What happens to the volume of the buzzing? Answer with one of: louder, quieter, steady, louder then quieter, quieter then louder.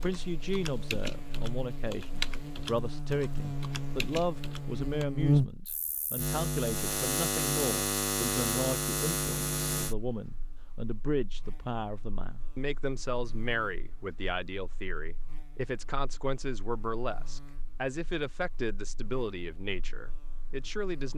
louder then quieter.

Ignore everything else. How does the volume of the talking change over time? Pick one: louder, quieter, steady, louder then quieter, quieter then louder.
steady.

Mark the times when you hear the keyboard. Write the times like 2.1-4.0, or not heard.
0.0-5.0.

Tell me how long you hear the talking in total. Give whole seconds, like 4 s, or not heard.
21 s.